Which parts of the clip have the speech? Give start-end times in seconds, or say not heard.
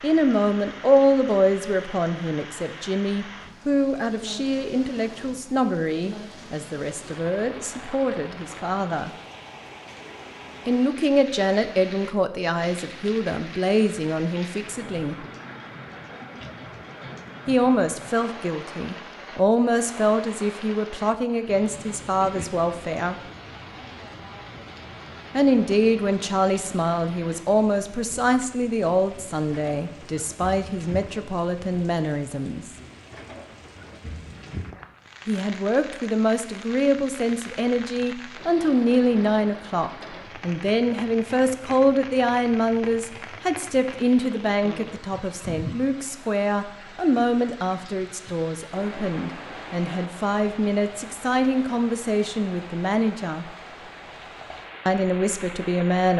0.0-9.1, 10.7-15.2, 17.4-23.1, 25.3-32.7, 35.2-53.5, 54.9-56.1.